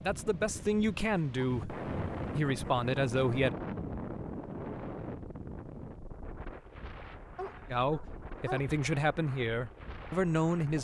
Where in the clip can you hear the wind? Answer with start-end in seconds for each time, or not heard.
0.0-10.7.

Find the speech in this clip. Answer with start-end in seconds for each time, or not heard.
0.0-3.5, 7.7-10.7.